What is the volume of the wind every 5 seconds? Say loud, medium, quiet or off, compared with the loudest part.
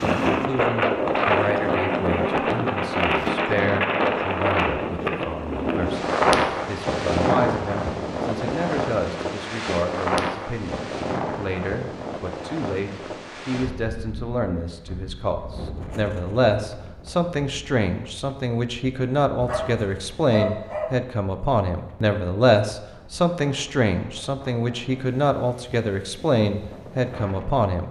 loud, loud, medium, quiet, quiet, quiet.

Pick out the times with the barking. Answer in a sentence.
You can hear the barking from 19.4 to 20.9 s.